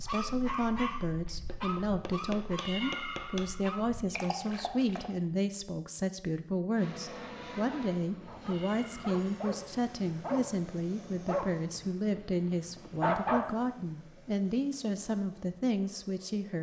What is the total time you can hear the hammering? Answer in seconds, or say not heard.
2 s.